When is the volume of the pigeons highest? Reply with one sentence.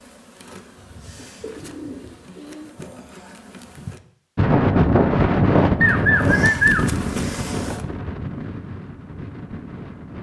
The volume of the pigeons peaks at 7 seconds.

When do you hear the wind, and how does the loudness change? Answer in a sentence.
You can hear the wind from 4.3 to 10.1 s, getting quieter.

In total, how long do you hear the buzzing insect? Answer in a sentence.
You can hear the buzzing insect for 6 seconds altogether.